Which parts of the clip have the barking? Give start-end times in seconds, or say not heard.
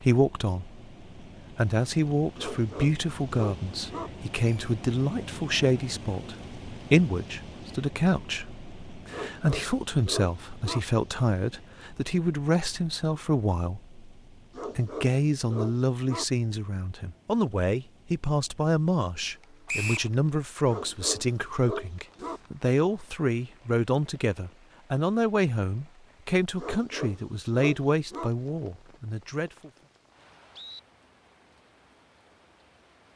2.4-4.1, 9.1-10.8, 14.5-16.2, 20.6-22.4, 26.6-28.3.